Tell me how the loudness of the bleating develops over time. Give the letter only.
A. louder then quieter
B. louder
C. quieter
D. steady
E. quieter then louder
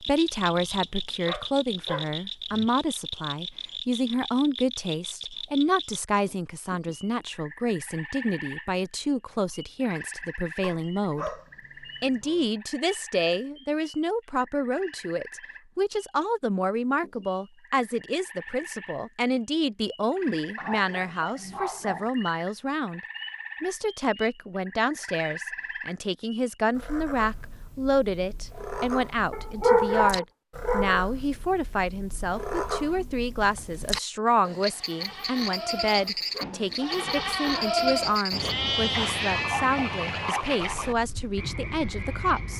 A.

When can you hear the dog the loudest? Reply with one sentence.
The volume of the dog peaks at 30 seconds.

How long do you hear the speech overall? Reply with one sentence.
You can hear the speech for 41 seconds altogether.